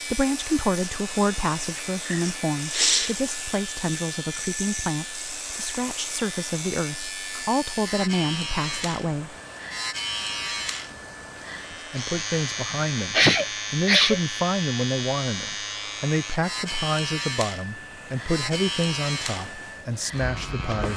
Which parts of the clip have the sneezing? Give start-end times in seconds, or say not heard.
2.0-3.1, 12.7-14.2.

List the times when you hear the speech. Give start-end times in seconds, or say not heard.
0.1-9.3, 11.7-20.9.